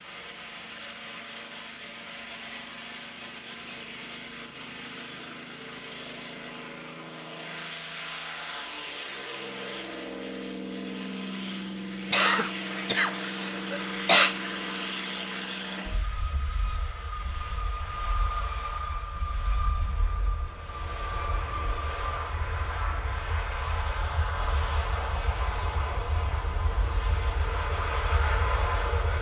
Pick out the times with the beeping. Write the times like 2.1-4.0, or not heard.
not heard.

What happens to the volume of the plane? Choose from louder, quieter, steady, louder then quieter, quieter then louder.
louder.